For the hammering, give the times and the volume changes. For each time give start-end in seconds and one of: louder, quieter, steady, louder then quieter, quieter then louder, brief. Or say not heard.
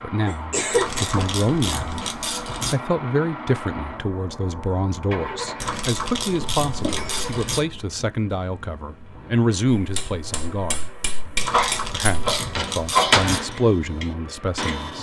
9.8-14.9 louder then quieter.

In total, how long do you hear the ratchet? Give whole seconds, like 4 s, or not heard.
6 s.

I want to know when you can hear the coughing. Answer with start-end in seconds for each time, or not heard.
0.2-1.8, 6.4-7.3, 11.5-13.2.